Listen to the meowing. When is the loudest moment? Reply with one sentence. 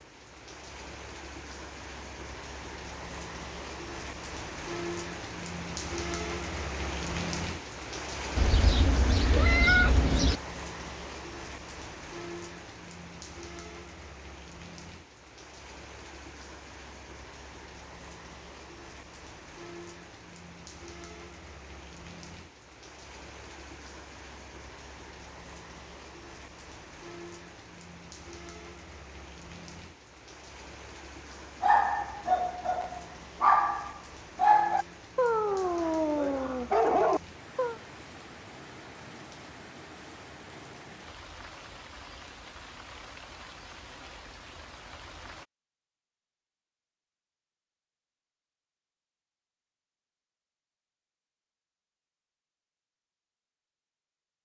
The loudest moment of the meowing is at 10 seconds.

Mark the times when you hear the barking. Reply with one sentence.
The barking can be heard from 31.6 to 37.8 s.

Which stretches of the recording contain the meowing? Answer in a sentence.
The meowing can be heard from 8.3 to 10.4 s.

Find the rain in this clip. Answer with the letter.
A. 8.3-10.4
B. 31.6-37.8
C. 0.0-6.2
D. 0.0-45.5
D.